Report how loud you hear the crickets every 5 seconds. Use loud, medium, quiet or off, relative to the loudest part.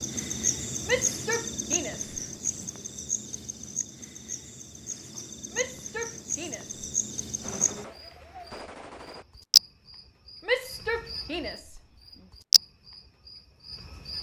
medium, loud, medium.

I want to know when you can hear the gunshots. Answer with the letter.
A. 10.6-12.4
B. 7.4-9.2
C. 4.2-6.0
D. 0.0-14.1
B.